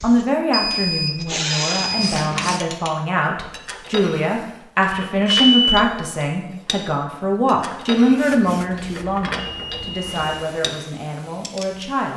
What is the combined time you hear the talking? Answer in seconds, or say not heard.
12 s.